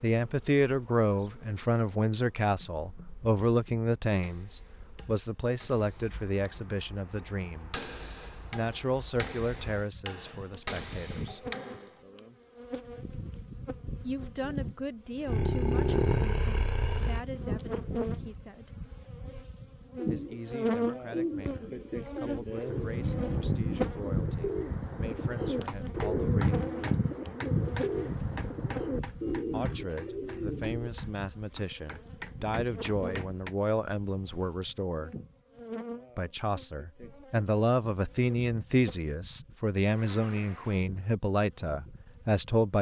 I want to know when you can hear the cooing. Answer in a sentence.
The cooing can be heard from 19.9 to 30.9 s.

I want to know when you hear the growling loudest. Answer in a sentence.
The loudest moment of the growling is at 16 seconds.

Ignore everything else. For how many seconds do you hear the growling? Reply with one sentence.
The growling can be heard for 3 seconds in total.